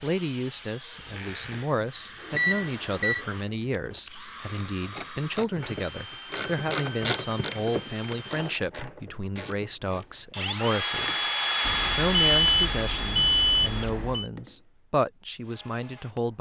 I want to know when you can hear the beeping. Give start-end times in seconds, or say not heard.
2.3-3.2, 6.3-7.2, 11.6-14.3.